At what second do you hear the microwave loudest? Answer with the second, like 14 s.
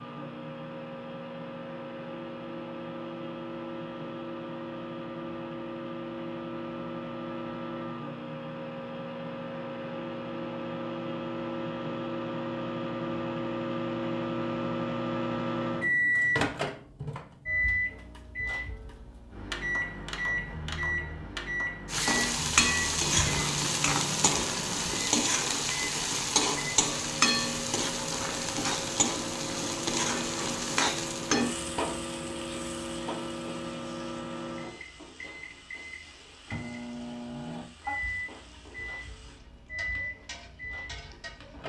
16 s.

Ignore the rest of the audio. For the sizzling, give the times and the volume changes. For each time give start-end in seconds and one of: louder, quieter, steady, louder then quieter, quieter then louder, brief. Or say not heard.
21.9-41.6 quieter.